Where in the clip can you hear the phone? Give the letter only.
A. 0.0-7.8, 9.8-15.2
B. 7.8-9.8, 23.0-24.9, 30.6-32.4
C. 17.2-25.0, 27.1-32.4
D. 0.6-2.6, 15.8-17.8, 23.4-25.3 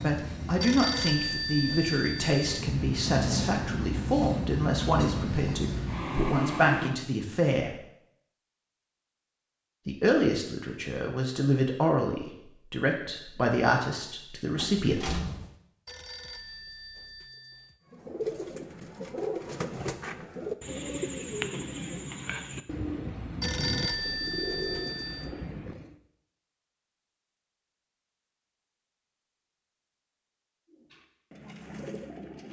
D.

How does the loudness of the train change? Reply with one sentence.
The loudness of the train goes up.